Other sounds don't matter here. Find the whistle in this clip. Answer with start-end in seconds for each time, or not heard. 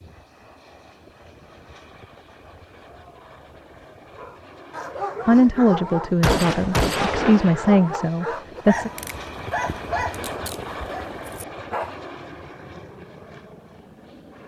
not heard.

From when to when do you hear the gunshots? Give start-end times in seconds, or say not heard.
6.2-7.8.